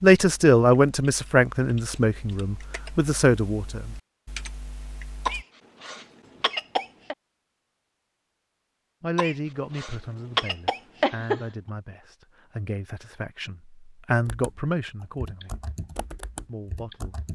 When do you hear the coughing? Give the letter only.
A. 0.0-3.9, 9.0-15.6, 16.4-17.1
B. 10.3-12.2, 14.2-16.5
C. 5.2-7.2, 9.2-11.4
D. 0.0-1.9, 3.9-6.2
C.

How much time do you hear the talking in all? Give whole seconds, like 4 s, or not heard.
11 s.